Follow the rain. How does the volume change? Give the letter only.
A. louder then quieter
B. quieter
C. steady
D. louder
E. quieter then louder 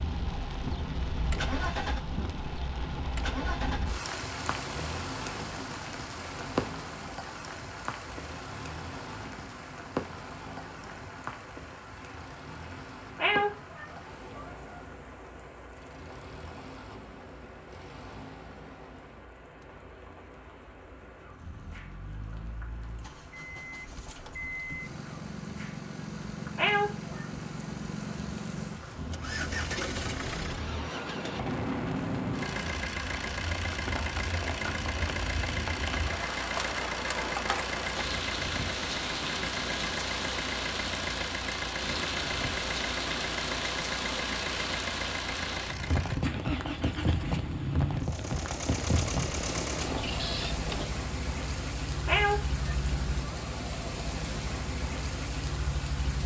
E.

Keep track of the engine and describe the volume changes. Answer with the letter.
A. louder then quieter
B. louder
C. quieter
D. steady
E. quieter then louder
E.